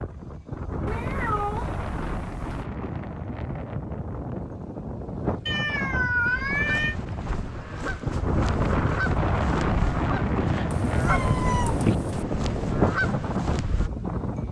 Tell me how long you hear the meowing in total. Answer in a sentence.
You can hear the meowing for 5 seconds altogether.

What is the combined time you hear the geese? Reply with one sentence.
The geese can be heard for 8 seconds in total.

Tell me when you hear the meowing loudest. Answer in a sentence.
The volume of the meowing peaks at 6 seconds.